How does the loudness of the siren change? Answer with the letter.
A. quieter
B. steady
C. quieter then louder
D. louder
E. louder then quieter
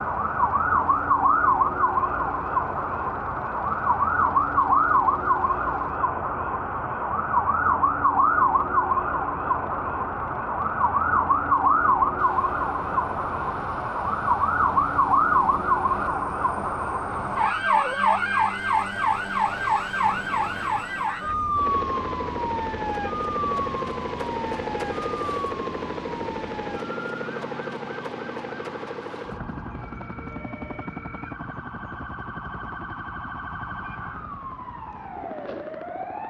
A.